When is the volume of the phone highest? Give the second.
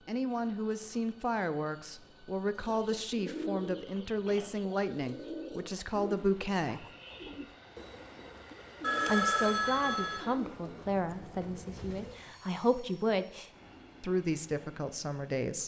9 s.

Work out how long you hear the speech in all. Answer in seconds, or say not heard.
13 s.